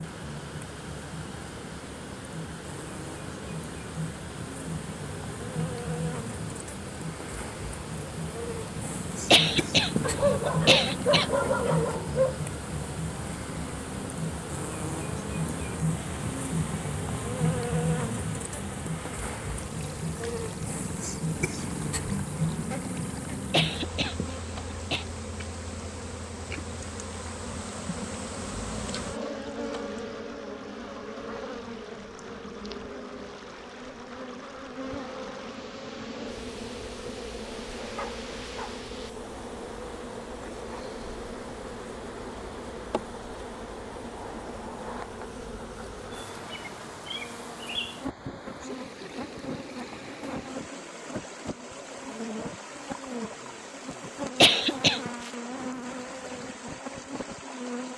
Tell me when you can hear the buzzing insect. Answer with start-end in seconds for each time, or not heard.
0.0-57.9.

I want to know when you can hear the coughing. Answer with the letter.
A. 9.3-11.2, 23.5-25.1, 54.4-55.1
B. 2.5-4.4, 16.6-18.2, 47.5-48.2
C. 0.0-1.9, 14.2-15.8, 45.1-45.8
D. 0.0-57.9
A.